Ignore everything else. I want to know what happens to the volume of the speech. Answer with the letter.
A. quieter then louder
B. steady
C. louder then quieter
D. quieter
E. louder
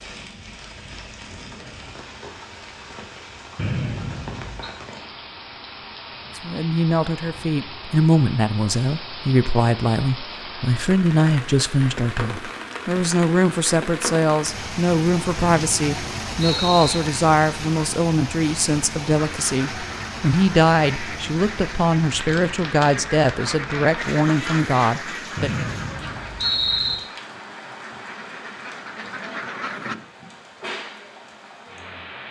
B.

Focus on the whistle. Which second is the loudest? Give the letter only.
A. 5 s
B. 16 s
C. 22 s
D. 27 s
D.